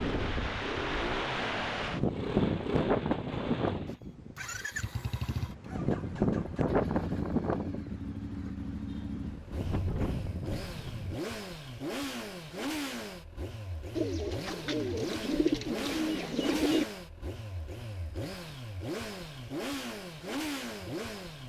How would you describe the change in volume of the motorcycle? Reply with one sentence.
The loudness of the motorcycle stays about the same.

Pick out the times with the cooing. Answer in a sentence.
The cooing can be heard from 13.9 to 16.9 s.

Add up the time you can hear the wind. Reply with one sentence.
The wind can be heard for 11 seconds in total.